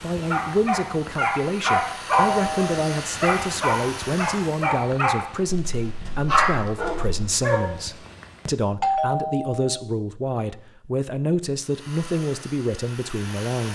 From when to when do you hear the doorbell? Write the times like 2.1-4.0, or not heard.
2.1-2.8, 8.8-9.8.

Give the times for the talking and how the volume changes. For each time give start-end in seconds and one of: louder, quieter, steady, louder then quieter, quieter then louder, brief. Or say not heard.
0.0-13.6 steady.